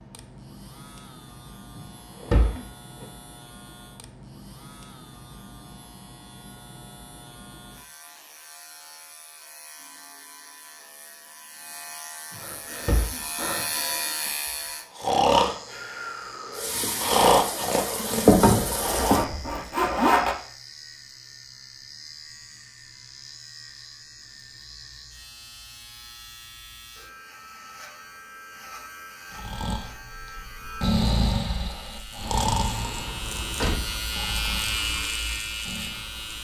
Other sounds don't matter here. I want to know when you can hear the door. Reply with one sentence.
The door can be heard from 1.8 to 3.0 s, from 12.3 to 13.7 s and from 32.2 to 34.0 s.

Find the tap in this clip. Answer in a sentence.
You can hear the tap from 16.6 to 19.6 s.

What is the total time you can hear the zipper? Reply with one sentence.
The zipper can be heard for 2 seconds in total.